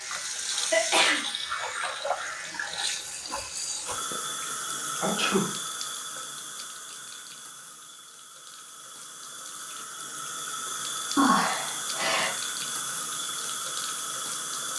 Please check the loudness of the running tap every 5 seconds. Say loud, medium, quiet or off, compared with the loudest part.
loud, medium, loud.